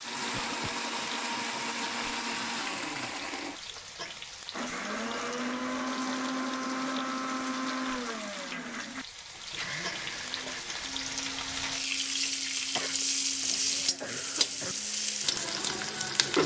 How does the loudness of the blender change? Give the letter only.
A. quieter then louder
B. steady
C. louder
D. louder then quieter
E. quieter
E.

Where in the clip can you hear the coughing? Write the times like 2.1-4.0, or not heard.
0.3-0.8, 12.8-14.8.